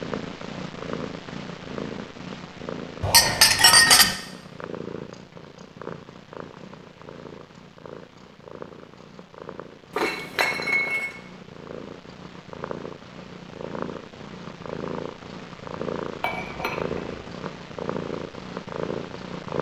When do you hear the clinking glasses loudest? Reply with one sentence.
The loudest moment of the clinking glasses is at 4 seconds.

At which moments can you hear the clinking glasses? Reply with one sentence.
You can hear the clinking glasses from 3.0 to 4.2 s, from 9.9 to 11.2 s and from 16.2 to 17.1 s.